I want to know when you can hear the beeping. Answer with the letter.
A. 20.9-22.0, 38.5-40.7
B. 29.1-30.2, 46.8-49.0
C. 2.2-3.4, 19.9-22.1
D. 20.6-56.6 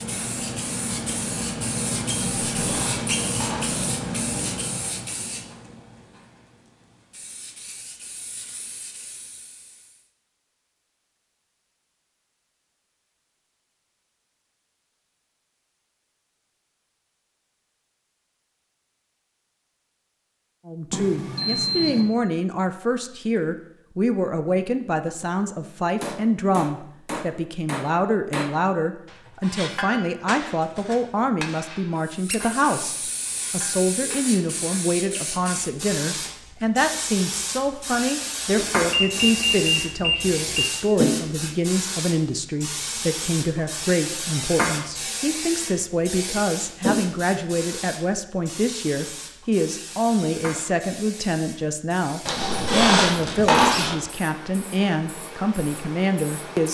A.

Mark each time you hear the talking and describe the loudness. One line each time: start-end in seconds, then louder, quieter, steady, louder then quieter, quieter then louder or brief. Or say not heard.
20.6-56.6 steady.